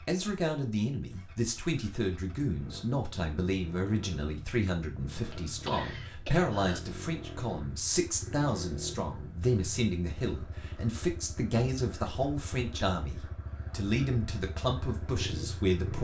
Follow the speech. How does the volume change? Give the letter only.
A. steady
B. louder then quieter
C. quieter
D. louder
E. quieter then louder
A.